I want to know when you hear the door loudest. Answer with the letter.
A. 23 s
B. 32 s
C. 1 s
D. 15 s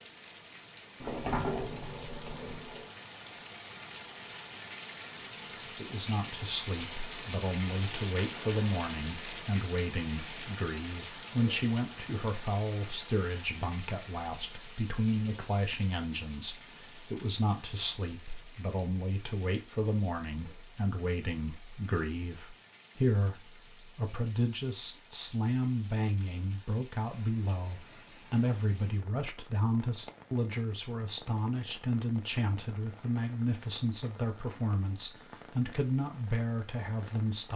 C.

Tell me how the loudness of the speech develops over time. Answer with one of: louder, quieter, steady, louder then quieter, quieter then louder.
steady.